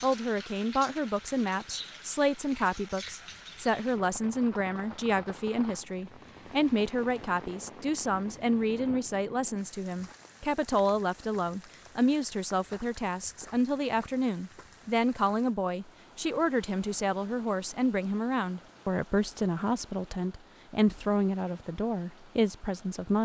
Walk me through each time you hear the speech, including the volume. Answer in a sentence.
You can hear the speech from 0.0 to 23.2 s, at a steady volume.